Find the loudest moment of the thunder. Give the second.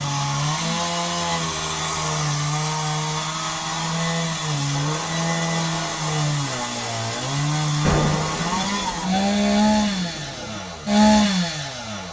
8 s.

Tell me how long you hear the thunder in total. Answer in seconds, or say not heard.
3 s.